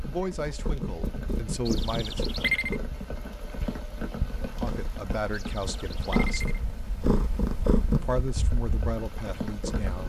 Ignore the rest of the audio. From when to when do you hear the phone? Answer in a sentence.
You can hear the phone from 1.6 to 2.8 s and from 5.3 to 6.6 s.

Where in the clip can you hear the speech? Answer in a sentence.
You can hear the speech from 0.0 to 2.3 s, from 4.5 to 6.5 s and from 7.8 to 10.0 s.